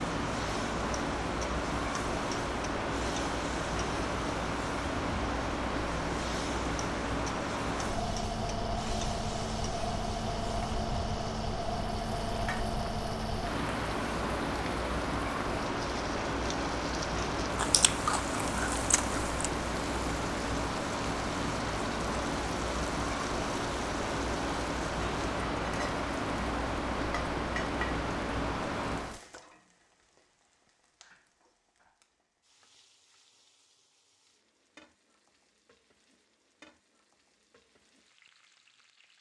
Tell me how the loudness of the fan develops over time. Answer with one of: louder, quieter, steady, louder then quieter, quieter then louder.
steady.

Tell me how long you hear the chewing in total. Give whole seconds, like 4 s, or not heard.
2 s.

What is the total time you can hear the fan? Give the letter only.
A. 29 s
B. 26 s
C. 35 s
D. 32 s
A.